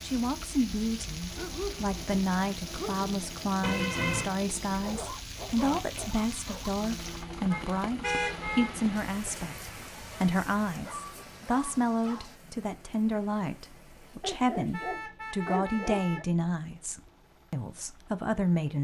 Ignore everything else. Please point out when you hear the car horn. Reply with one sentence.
You can hear the car horn from 3.6 to 4.3 s, from 7.5 to 8.7 s and from 14.7 to 16.2 s.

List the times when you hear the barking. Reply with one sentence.
You can hear the barking from 1.4 to 3.1 s, from 4.8 to 6.7 s, from 10.7 to 12.3 s and from 14.2 to 16.2 s.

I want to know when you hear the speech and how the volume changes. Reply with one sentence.
The speech can be heard from 0.0 to 18.8 s, at a steady volume.